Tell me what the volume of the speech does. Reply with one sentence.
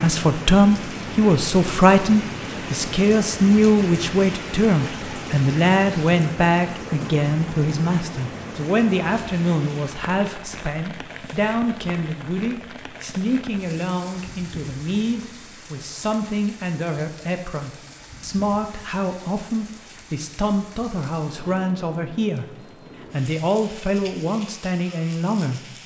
The volume of the speech goes down.